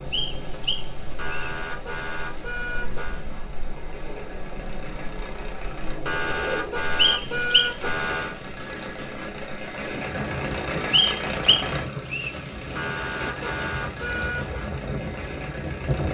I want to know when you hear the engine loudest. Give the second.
11 s.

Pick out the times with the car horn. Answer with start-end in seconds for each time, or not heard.
1.1-3.2, 6.0-8.4, 12.8-14.6.